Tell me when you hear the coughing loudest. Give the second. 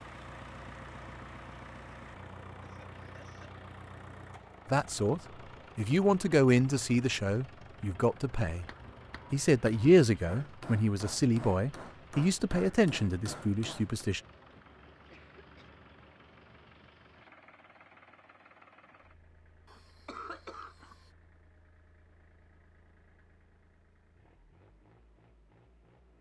20 s.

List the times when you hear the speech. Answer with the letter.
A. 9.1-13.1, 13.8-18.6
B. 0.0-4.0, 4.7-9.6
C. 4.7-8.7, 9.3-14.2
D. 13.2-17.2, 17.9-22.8
C.